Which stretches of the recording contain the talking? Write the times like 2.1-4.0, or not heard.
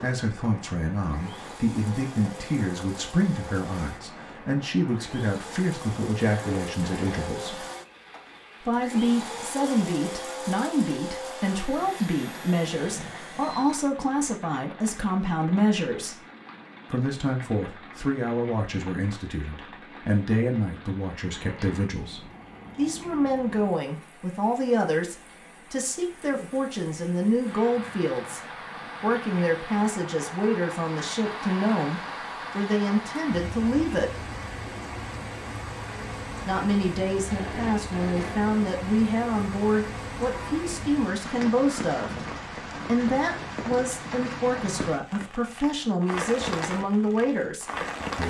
0.0-7.7, 8.6-16.2, 16.9-34.3, 36.5-48.2.